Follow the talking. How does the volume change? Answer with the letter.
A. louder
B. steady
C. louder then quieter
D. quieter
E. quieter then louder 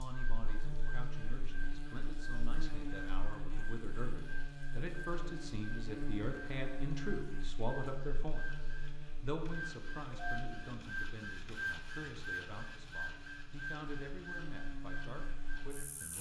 C.